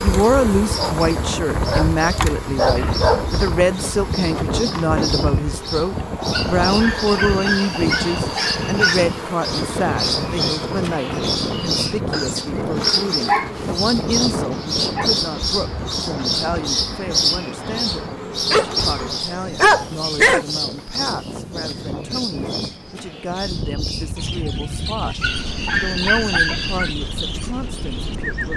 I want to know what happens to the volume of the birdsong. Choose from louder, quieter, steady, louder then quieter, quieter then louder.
louder then quieter.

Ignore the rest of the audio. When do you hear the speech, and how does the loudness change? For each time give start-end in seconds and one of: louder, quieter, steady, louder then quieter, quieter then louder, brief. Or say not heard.
0.0-25.1 quieter
25.8-28.5 brief.